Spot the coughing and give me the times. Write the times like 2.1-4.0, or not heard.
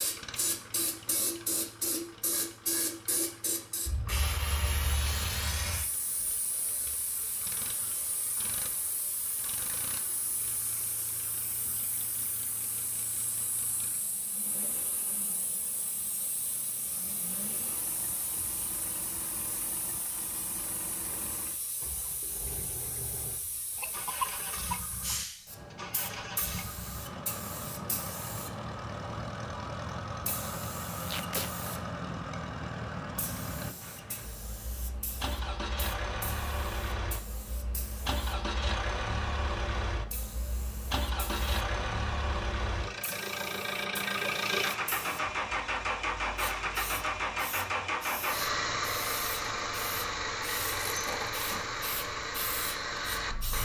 23.8-25.2.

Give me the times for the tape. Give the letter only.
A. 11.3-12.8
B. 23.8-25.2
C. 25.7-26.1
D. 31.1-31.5
D.